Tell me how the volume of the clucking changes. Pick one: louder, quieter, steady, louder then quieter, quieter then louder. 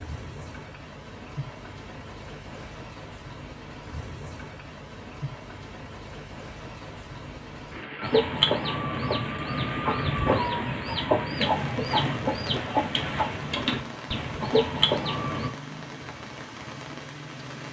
steady.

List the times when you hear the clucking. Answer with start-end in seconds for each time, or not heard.
8.0-15.5.